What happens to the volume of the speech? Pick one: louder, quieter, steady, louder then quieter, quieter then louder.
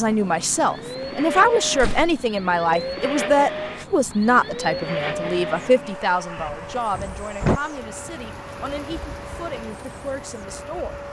quieter.